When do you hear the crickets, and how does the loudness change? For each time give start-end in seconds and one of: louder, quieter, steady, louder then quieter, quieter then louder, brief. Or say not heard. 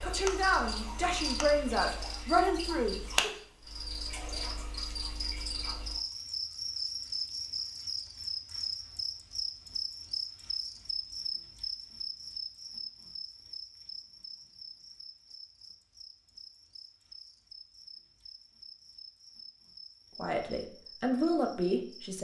0.0-22.1 quieter.